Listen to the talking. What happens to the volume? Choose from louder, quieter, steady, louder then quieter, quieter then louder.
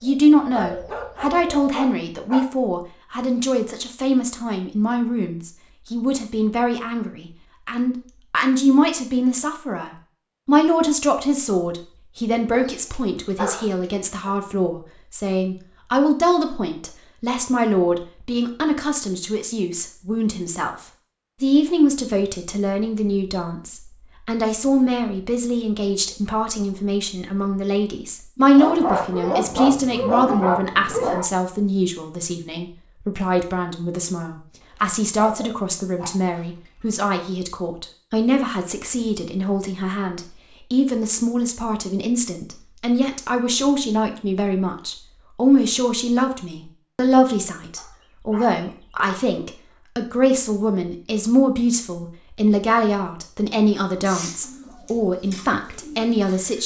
steady.